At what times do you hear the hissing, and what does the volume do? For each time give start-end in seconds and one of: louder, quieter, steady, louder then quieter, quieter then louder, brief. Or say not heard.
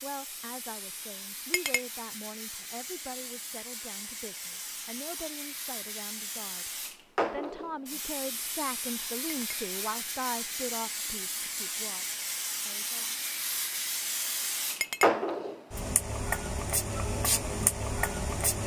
0.0-18.6 louder.